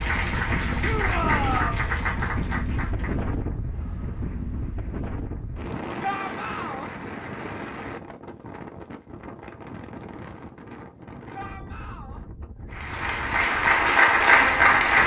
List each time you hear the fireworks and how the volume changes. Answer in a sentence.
The fireworks can't be heard in this clip.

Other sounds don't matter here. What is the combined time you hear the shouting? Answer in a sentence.
You can hear the shouting for 3 seconds altogether.